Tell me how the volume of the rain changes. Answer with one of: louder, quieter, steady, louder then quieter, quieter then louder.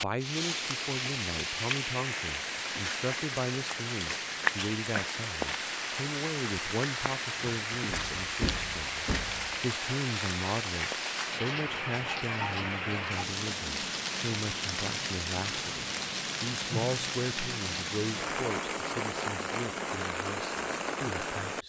steady.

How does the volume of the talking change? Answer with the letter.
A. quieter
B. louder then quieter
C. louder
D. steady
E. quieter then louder
D.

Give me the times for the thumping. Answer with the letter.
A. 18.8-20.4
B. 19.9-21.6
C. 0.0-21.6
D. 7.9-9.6
D.